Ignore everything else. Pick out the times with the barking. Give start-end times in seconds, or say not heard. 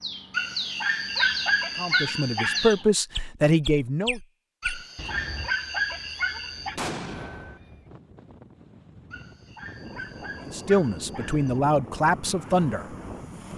0.3-2.8, 4.6-6.8, 9.1-11.6.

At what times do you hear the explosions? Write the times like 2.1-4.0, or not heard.
6.8-7.6.